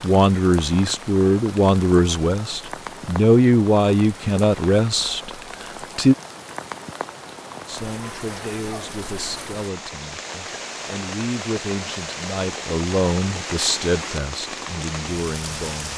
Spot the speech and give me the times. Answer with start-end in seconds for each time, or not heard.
0.0-6.2, 7.7-15.9.